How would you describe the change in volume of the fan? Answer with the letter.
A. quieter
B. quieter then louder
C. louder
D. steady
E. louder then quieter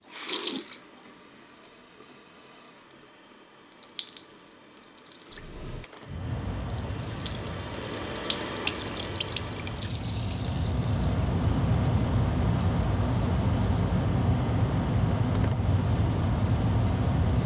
C.